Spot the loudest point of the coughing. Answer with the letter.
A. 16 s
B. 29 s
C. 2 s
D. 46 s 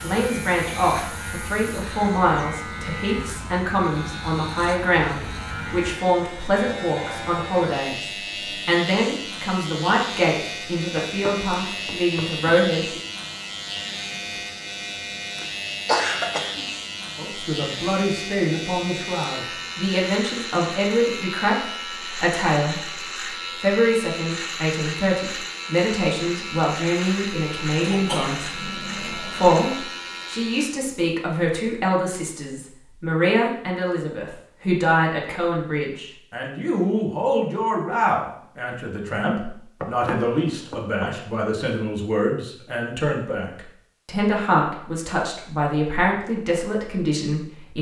A.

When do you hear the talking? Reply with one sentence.
The talking can be heard from 0.0 to 13.0 s, from 17.1 to 22.8 s and from 23.6 to 47.7 s.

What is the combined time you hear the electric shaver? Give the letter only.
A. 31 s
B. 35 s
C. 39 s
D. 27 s
A.